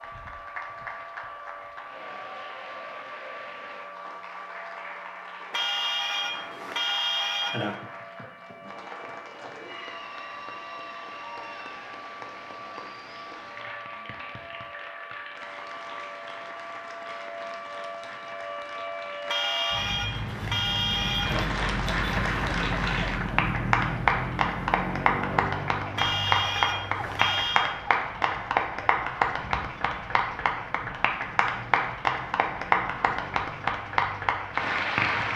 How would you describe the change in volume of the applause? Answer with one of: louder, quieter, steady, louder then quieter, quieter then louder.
louder.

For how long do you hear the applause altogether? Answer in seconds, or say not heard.
35 s.